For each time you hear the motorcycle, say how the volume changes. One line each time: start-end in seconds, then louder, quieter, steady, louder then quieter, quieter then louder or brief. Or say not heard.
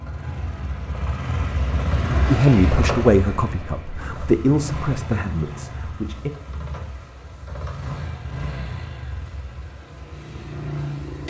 0.0-11.2 quieter.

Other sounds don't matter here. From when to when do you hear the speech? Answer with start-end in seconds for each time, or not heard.
2.2-6.3.